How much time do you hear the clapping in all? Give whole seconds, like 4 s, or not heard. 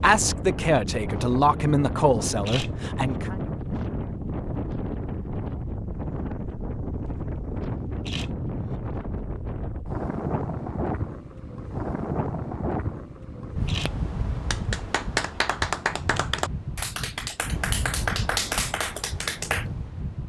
5 s.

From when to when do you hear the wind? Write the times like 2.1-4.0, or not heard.
0.0-20.2.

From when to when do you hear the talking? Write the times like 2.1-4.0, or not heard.
0.0-3.4.